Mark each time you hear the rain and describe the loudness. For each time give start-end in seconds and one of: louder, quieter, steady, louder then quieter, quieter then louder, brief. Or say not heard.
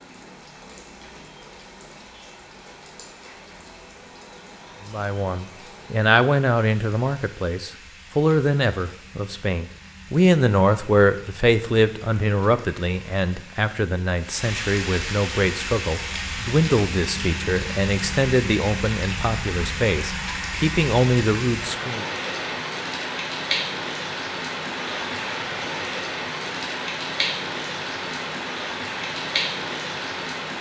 0.0-30.5 louder.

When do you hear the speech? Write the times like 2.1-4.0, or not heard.
4.8-22.1.